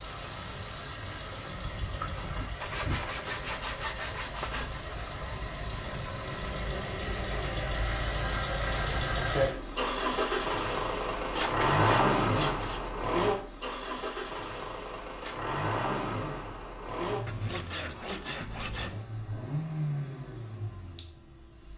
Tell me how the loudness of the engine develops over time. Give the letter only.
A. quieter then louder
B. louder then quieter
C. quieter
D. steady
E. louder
B.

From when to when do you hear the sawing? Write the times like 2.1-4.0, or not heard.
2.6-5.0, 11.3-12.9, 17.2-19.1.